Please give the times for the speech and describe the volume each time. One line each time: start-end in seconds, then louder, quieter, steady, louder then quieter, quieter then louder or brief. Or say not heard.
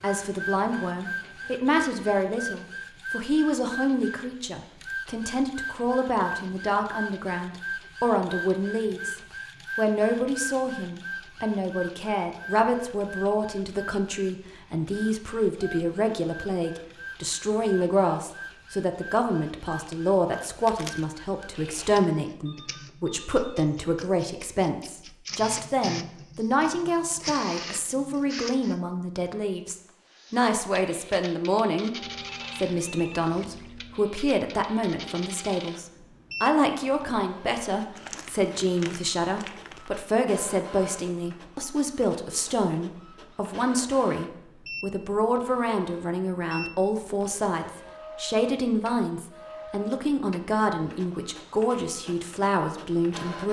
0.0-31.9 steady
32.5-53.4 steady.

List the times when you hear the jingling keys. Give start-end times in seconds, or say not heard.
not heard.